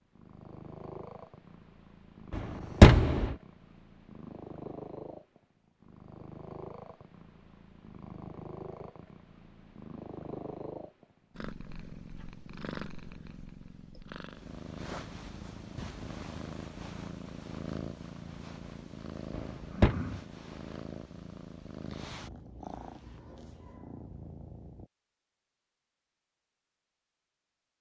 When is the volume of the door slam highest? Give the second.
3 s.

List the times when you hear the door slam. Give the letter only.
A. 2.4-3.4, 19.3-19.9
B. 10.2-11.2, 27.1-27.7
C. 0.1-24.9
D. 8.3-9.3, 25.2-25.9
A.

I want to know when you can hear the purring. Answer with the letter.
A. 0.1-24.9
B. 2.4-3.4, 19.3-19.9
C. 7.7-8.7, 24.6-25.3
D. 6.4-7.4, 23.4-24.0
A.